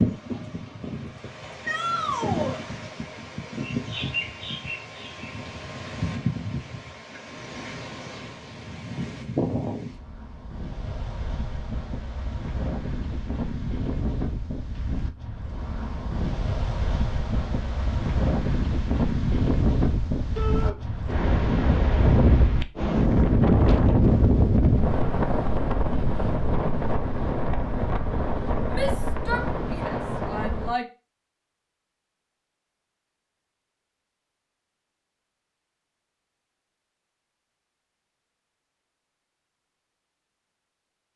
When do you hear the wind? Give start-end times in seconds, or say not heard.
0.0-30.8.